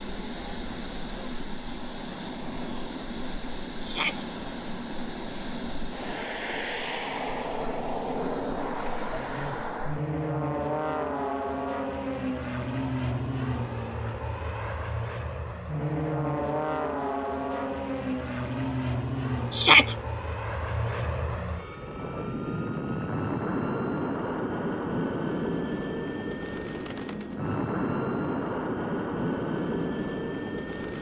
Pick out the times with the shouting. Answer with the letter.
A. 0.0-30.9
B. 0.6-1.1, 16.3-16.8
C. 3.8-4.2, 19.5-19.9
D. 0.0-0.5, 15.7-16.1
C.